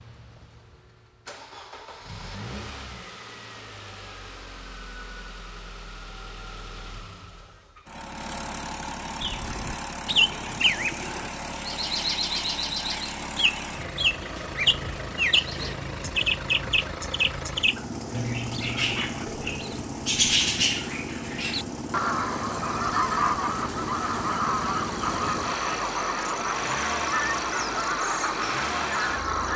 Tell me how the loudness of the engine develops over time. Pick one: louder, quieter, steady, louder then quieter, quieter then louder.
louder.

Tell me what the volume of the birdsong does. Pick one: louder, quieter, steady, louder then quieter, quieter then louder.
steady.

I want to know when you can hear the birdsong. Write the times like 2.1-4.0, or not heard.
9.2-29.5.